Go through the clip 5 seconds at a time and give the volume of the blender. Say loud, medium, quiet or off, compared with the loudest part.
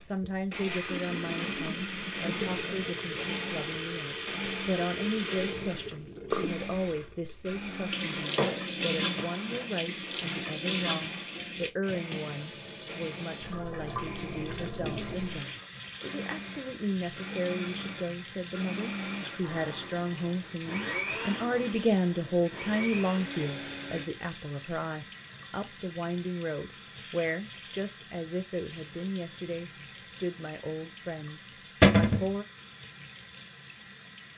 loud, loud, medium, loud, loud, off, off.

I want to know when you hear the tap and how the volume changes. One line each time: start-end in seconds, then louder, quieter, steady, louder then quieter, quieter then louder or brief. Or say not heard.
0.0-34.3 quieter.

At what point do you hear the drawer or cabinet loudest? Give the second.
32 s.